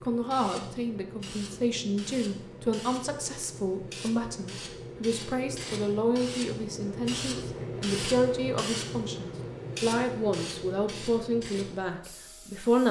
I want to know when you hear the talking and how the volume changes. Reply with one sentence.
You can hear the talking from 0.0 to 12.8 s, at a steady volume.